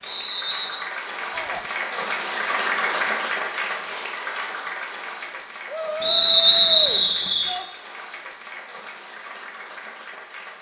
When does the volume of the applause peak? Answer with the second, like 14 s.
3 s.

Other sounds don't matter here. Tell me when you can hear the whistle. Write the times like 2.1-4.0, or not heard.
0.0-0.8, 6.0-7.5.